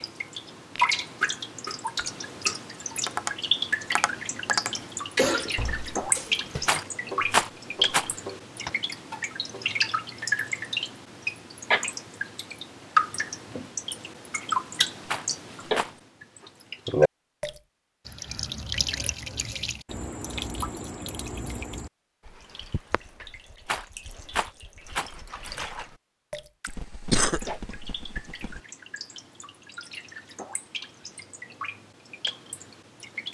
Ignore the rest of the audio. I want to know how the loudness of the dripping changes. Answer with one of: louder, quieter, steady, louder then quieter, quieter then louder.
quieter.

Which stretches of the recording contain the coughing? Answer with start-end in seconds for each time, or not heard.
5.2-6.8, 26.6-28.6.